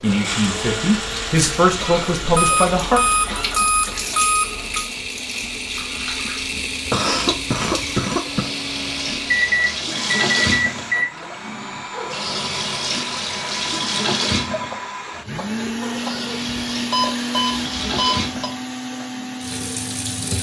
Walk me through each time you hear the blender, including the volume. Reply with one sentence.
The blender can be heard from 0.0 to 20.3 s, at a steady volume.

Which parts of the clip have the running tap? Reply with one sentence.
The running tap can be heard from 0.0 to 20.3 s.